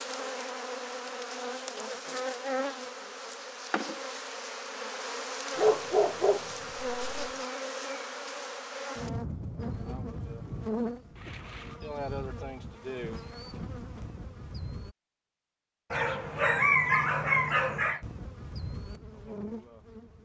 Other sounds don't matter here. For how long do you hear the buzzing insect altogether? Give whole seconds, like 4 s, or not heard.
17 s.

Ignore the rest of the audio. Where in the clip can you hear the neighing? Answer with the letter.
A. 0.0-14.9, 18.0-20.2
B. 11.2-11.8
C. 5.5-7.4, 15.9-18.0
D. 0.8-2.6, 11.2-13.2
B.